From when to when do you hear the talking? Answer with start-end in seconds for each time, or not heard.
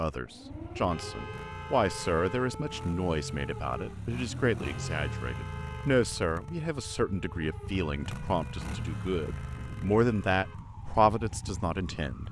0.0-12.2.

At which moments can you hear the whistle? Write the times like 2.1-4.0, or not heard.
not heard.